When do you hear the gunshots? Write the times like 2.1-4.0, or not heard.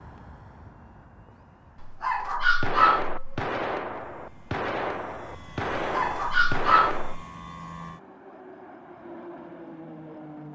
2.6-7.2.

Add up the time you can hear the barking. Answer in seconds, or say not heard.
3 s.